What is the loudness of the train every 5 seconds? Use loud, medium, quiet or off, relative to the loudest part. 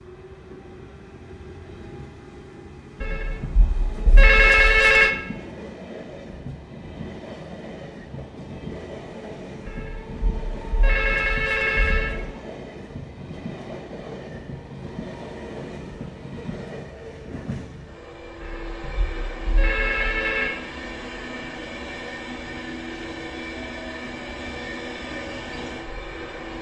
medium, loud, loud, loud, loud, loud.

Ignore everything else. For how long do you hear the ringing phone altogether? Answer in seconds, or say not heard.
7 s.